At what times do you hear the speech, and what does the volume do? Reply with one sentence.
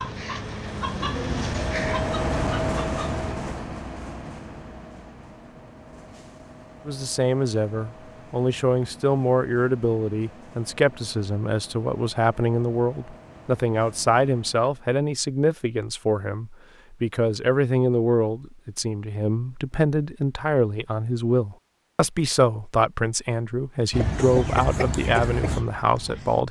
You can hear the speech from 6.8 to 26.4 s, at a steady volume.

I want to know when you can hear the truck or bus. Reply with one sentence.
The truck or bus can be heard from 0.0 to 14.9 s.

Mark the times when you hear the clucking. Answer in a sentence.
You can hear the clucking from 0.0 to 3.2 s and from 23.9 to 26.4 s.